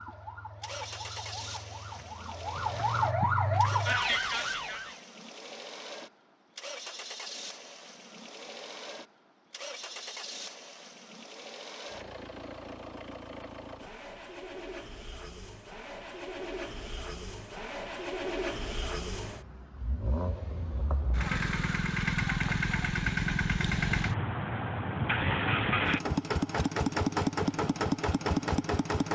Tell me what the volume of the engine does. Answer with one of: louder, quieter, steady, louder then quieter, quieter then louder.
louder.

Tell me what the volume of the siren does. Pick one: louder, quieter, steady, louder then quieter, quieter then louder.
louder.